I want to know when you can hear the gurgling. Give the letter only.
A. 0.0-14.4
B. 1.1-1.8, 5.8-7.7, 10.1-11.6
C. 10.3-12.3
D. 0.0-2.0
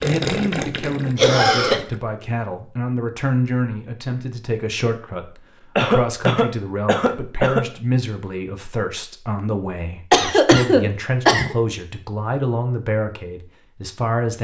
D.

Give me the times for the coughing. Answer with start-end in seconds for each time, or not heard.
1.1-1.8, 5.8-7.7, 10.1-11.6.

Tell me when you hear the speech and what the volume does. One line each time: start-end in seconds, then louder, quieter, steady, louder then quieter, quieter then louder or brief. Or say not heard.
0.0-14.4 steady.